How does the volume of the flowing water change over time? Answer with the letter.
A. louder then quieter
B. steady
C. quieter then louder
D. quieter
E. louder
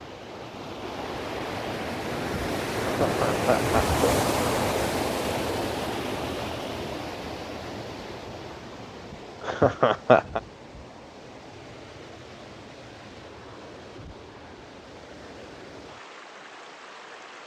D.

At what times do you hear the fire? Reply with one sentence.
You can't hear the fire here.